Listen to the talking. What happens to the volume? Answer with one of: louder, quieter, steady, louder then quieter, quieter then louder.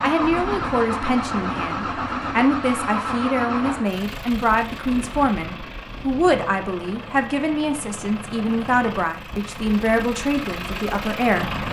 steady.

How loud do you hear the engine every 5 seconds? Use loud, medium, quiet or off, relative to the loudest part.
loud, medium, loud.